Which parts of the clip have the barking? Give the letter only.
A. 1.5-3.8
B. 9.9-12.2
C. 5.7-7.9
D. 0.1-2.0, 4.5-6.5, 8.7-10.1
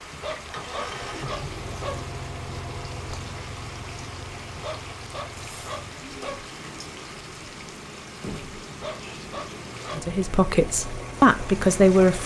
D.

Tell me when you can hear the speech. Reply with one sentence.
The speech can be heard from 9.9 to 12.2 s.